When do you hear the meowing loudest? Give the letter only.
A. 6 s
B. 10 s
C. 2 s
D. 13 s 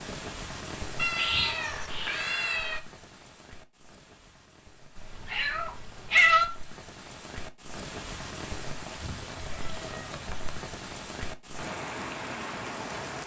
A.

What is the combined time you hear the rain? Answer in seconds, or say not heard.
13 s.